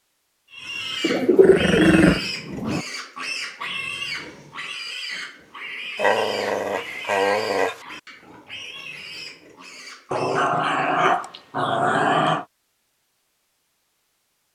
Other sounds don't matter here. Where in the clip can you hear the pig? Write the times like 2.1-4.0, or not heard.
0.5-10.6.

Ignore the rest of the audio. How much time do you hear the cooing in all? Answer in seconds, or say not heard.
2 s.